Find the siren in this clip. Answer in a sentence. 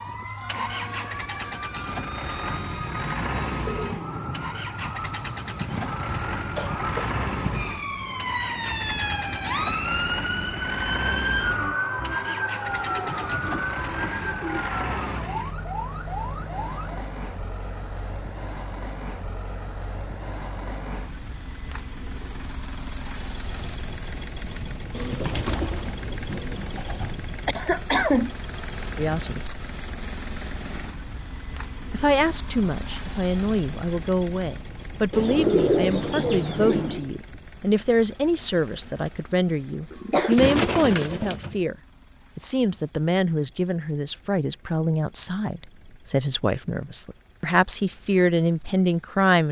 The siren can be heard from 0.0 to 17.1 s.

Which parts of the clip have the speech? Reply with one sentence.
The speech can be heard from 28.9 to 29.4 s, from 31.9 to 41.8 s and from 42.4 to 49.4 s.